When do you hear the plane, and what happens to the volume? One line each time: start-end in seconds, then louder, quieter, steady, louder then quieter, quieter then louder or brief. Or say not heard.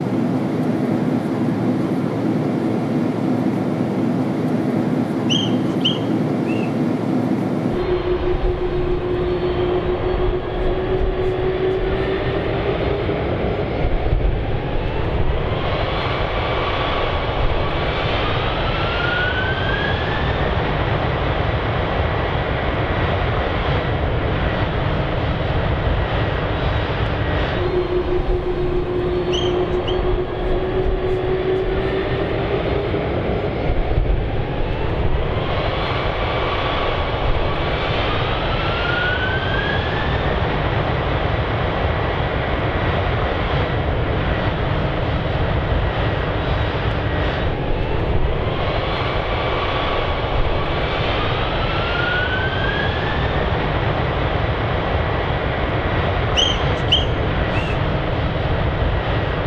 0.0-59.4 steady.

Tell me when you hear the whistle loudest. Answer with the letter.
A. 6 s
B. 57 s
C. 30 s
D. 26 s
B.